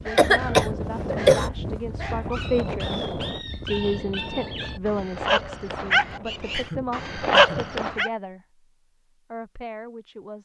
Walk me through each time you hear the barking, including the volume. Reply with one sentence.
You can hear the barking from 0.0 to 8.1 s, getting louder.